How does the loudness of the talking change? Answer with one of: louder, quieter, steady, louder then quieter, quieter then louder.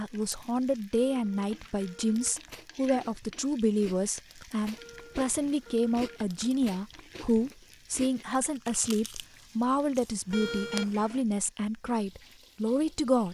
steady.